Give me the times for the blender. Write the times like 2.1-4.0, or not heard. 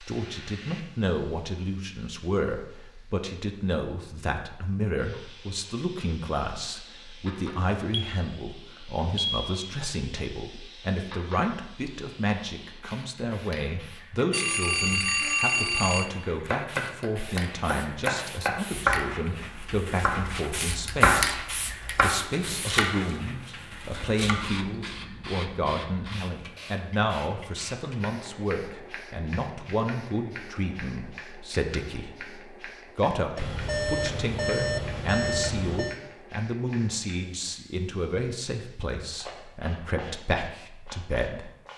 not heard.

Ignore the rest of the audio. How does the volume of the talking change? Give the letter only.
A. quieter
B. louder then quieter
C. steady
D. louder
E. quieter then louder
C.